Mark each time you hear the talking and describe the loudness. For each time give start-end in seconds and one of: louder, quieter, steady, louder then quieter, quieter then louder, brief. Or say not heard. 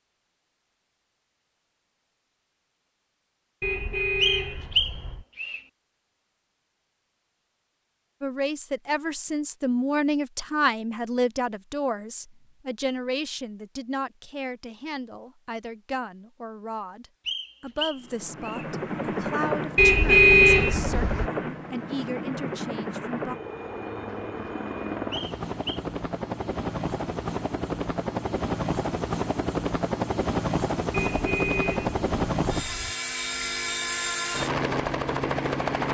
8.2-23.4 quieter.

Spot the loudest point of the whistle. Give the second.
5 s.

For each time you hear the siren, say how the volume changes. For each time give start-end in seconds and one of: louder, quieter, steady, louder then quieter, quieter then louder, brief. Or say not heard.
not heard.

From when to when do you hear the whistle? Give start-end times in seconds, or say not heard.
4.2-5.6, 17.2-18.6, 25.1-25.8.